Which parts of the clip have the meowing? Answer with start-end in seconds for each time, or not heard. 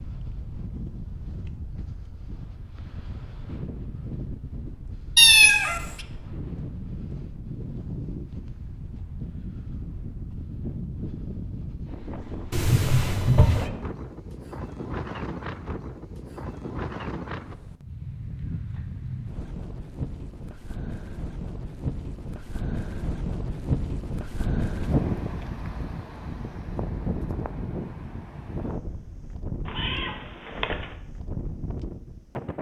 5.2-5.9, 12.5-13.7, 29.6-30.9.